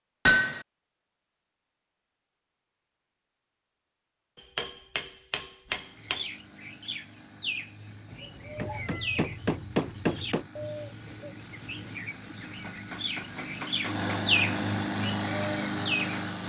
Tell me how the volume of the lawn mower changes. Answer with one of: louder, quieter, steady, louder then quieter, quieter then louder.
louder.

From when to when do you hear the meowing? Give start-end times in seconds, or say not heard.
8.1-9.2.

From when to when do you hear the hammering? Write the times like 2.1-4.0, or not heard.
0.2-0.7, 4.5-6.2, 8.6-10.4, 12.5-14.5.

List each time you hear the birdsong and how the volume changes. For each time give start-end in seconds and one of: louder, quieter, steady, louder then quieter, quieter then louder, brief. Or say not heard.
6.0-16.2 louder.